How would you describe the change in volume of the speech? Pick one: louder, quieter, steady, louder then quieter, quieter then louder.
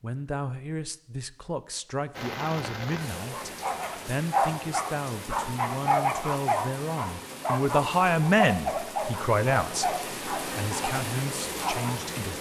louder then quieter.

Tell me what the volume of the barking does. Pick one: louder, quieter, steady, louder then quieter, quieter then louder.
quieter.